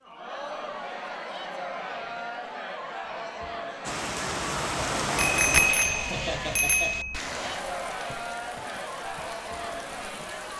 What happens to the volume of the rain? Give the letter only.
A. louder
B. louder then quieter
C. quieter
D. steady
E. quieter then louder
C.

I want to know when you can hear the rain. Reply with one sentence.
The rain can be heard from 3.8 to 10.5 s.